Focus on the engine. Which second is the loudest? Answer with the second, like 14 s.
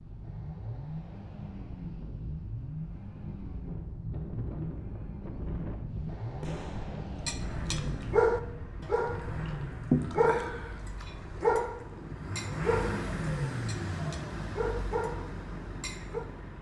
13 s.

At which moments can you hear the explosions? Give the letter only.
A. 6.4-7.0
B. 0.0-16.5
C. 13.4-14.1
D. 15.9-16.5
A.